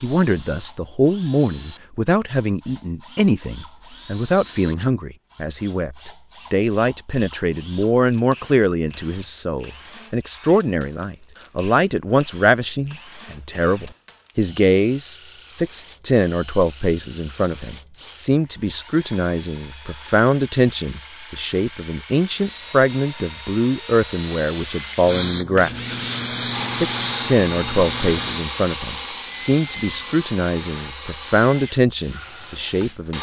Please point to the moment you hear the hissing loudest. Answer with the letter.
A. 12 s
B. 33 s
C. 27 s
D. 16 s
C.